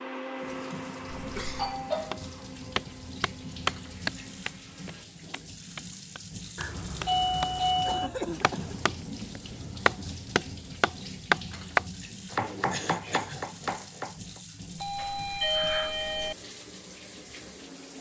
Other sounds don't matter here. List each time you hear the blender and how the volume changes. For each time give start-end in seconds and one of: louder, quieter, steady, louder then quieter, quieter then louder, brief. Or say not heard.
0.0-5.0 quieter.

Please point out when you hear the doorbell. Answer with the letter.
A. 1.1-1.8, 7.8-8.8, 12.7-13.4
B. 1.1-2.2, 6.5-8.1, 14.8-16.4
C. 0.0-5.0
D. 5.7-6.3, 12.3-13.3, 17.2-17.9
B.